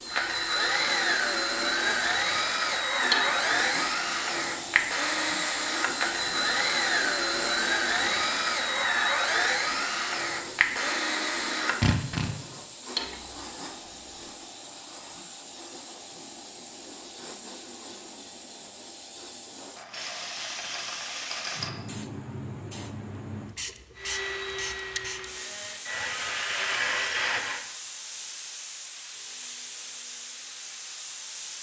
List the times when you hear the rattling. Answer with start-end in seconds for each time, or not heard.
19.8-21.8.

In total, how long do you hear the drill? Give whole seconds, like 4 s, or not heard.
16 s.